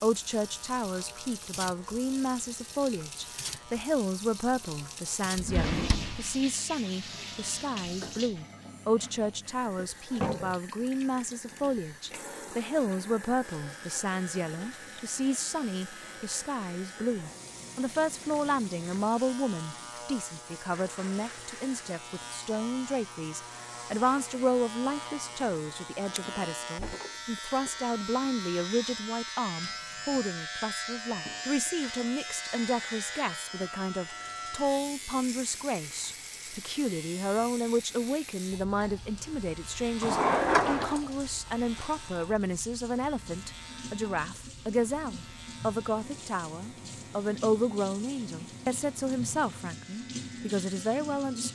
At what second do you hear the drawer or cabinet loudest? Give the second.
40 s.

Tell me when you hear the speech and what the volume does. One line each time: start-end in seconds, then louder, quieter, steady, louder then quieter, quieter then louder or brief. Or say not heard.
0.0-51.4 steady.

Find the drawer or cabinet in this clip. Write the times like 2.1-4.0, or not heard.
5.3-6.3, 26.1-27.7, 40.0-41.0.